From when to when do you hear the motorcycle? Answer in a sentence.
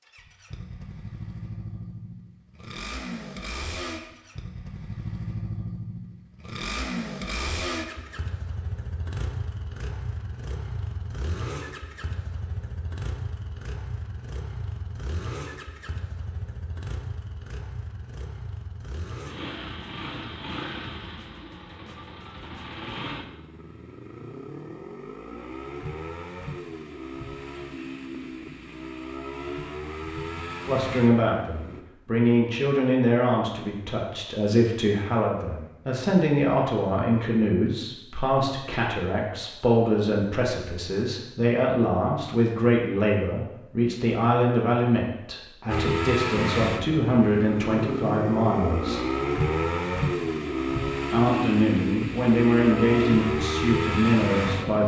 You can hear the motorcycle from 0.0 to 31.9 s and from 45.6 to 54.8 s.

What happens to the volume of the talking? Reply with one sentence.
The loudness of the talking stays about the same.